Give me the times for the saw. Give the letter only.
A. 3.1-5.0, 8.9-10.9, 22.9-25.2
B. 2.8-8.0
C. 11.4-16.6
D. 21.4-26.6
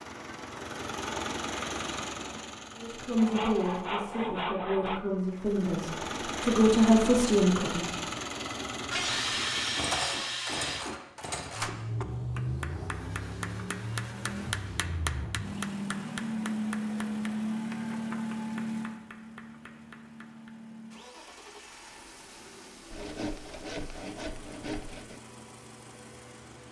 A.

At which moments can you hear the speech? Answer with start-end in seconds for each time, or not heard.
2.8-8.0.